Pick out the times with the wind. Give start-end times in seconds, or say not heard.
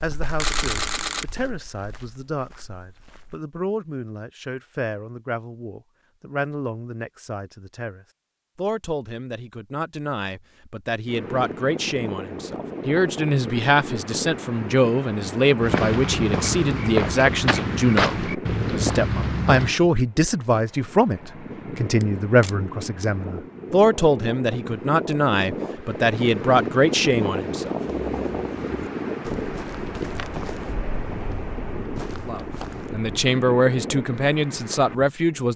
11.1-35.5.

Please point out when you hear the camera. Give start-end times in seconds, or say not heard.
0.3-1.2, 22.0-22.6.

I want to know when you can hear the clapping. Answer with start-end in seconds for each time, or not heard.
not heard.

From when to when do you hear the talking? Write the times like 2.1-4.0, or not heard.
0.0-27.8, 32.2-35.5.